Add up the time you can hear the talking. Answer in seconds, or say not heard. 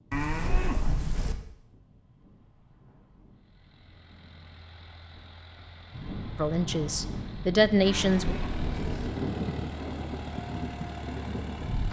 2 s.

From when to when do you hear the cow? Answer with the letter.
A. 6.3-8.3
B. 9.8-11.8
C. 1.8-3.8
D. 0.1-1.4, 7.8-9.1
D.